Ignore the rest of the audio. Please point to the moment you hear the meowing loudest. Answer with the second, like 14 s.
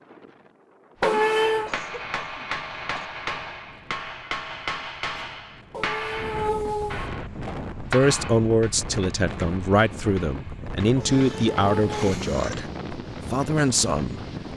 1 s.